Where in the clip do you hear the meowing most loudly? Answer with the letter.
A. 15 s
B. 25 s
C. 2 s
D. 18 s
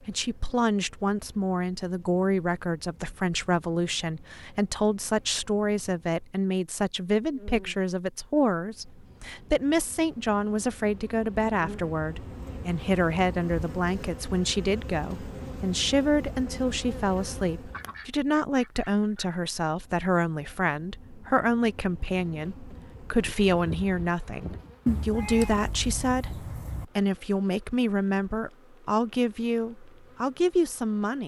B.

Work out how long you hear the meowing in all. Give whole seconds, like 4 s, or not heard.
2 s.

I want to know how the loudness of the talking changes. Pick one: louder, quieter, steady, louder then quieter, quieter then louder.
steady.